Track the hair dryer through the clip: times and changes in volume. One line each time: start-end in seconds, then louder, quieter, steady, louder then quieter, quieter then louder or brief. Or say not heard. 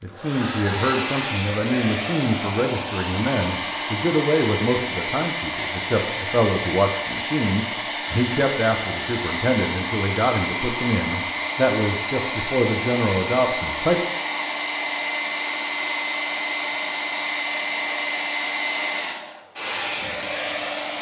0.0-20.9 steady.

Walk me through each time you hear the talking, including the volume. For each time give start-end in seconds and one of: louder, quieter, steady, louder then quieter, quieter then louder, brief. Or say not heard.
0.0-14.0 steady.